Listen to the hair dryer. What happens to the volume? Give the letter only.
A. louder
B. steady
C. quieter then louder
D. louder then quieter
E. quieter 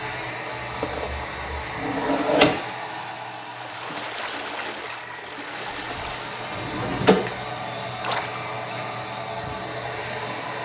C.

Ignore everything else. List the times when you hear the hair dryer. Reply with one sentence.
You can hear the hair dryer from 0.0 to 10.6 s.